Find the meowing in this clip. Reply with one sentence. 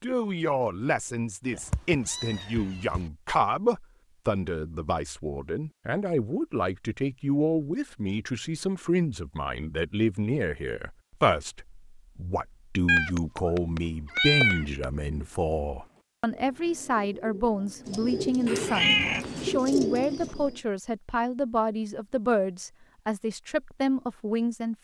The meowing can be heard from 1.5 to 3.0 s, from 12.8 to 14.8 s and from 18.4 to 19.6 s.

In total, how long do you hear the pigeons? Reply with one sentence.
You can hear the pigeons for 7 seconds altogether.